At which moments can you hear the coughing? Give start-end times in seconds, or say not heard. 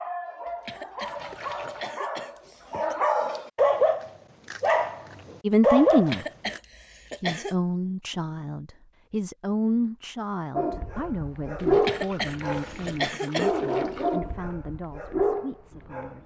0.5-3.0, 5.9-7.5, 11.7-13.5.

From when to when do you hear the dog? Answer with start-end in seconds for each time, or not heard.
0.0-6.6, 10.5-16.2.